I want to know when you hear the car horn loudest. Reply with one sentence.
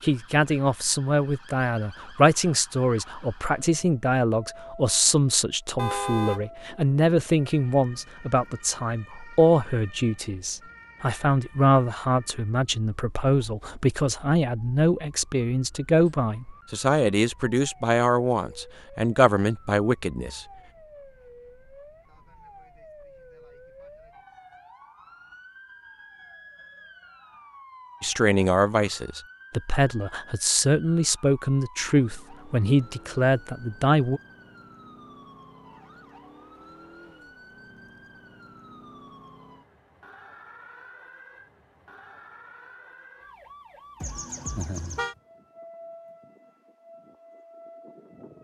The loudest moment of the car horn is at 6 seconds.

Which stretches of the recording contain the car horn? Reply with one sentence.
You can hear the car horn from 5.8 to 6.5 s and from 44.0 to 45.1 s.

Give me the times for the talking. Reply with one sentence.
You can hear the talking from 0.0 to 20.4 s and from 28.0 to 34.2 s.